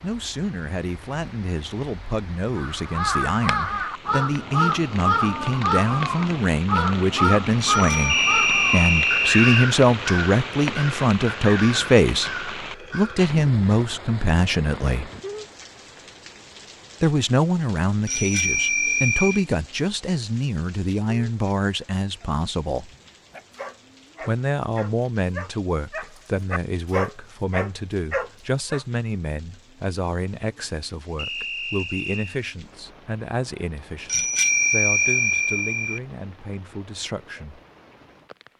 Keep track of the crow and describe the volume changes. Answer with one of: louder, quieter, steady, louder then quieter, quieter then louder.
quieter.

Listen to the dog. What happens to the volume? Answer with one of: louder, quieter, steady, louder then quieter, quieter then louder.
louder.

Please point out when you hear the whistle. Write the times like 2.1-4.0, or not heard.
8.1-9.7, 31.1-32.4.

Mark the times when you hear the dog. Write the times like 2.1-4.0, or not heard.
22.2-28.9.